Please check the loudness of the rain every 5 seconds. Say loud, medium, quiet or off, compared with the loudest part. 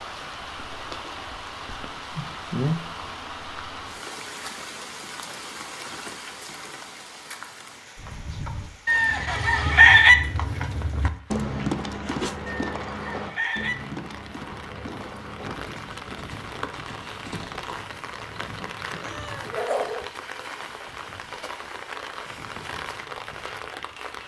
loud, loud, medium, loud, loud.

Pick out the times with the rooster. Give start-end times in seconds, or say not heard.
8.8-10.2, 12.5-13.8.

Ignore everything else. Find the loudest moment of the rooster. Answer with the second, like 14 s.
10 s.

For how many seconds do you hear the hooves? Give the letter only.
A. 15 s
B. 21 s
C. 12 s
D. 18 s
C.